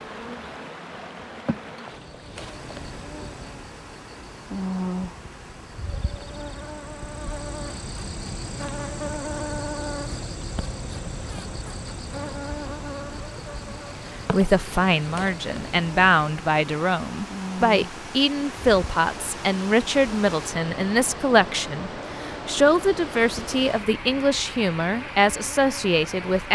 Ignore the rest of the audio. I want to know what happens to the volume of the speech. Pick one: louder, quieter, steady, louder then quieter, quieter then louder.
steady.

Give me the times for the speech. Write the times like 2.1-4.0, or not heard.
13.7-26.5.